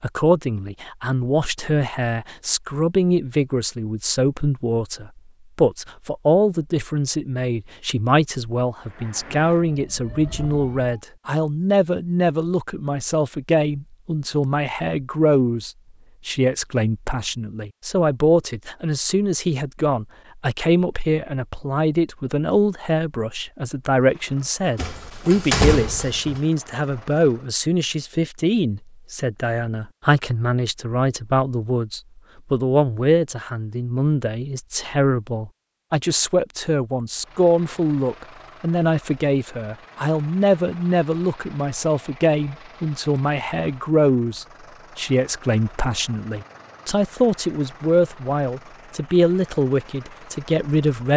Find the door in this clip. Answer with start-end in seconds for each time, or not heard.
24.8-26.4.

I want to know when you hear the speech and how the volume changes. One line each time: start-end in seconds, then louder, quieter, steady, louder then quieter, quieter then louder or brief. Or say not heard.
0.0-51.1 steady.